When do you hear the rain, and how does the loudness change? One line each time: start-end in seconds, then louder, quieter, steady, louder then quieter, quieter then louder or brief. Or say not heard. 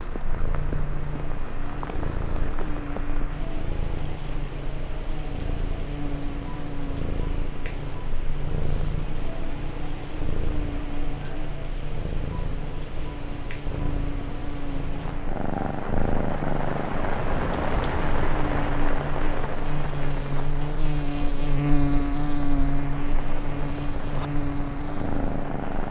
0.0-25.8 louder then quieter.